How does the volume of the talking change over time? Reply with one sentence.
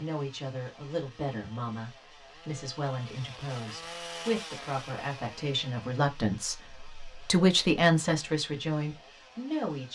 The loudness of the talking goes up.